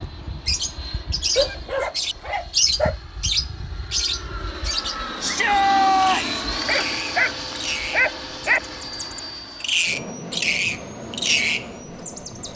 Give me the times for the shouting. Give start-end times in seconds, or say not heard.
5.2-6.4.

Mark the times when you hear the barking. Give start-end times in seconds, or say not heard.
1.4-3.0, 6.6-8.6.